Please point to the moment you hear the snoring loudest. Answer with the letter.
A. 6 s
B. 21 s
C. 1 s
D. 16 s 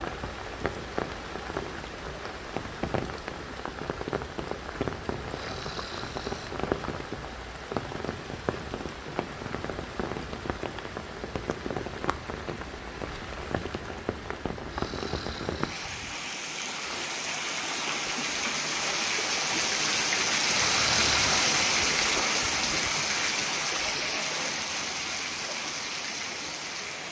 B.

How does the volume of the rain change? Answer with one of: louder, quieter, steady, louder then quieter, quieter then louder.
louder.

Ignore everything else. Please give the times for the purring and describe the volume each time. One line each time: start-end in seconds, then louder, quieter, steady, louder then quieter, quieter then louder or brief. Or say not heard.
not heard.